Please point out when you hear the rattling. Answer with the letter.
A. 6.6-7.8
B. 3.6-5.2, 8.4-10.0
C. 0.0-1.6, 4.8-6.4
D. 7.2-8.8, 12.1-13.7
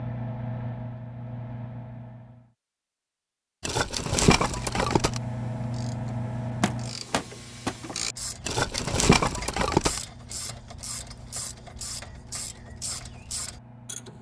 B.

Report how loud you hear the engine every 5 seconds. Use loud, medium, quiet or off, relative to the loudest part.
loud, loud, quiet.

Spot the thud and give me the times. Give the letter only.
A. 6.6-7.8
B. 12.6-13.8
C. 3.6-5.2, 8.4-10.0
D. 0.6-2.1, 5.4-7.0
A.